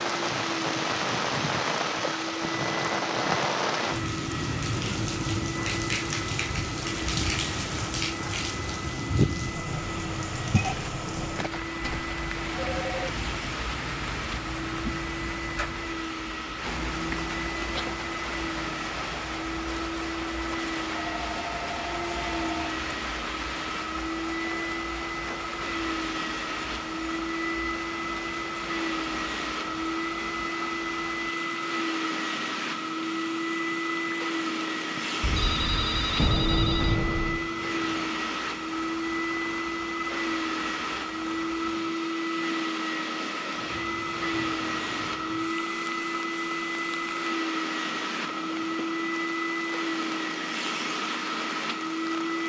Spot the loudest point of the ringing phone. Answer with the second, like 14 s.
36 s.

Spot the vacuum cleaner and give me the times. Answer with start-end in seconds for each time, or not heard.
0.0-52.4.